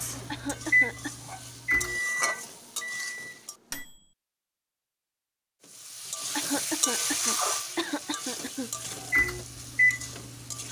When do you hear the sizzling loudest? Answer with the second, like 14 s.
7 s.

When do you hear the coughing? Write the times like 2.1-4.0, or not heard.
0.2-1.1, 6.3-8.9.